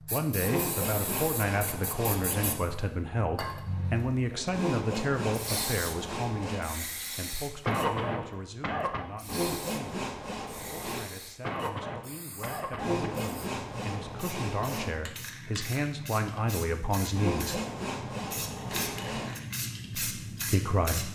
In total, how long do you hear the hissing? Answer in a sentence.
The hissing can be heard for 21 seconds in total.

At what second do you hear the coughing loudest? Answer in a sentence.
The volume of the coughing peaks at 8 seconds.